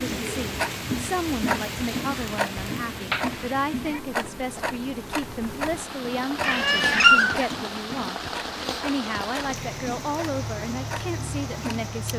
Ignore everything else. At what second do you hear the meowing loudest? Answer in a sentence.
The volume of the meowing peaks at 7 seconds.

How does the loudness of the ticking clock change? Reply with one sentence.
The loudness of the ticking clock goes down.